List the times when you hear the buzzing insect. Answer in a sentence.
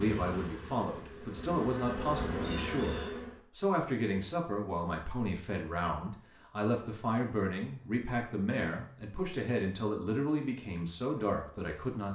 The buzzing insect can be heard from 0.0 to 3.4 s.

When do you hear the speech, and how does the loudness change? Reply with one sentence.
You can hear the speech from 0.0 to 12.1 s, at a steady volume.